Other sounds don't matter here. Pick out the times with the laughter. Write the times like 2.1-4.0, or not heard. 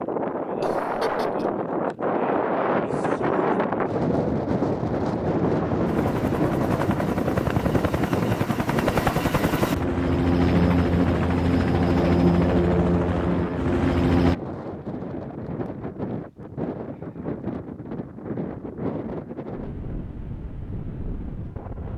0.6-1.4.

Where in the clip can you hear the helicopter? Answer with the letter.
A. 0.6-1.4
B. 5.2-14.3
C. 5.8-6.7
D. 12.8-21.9
B.